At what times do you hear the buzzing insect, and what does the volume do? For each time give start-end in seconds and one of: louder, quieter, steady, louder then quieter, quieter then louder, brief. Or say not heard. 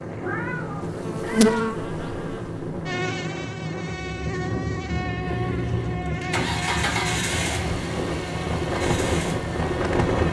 0.0-10.2 quieter.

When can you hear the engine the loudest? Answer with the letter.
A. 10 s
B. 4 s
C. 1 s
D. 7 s
D.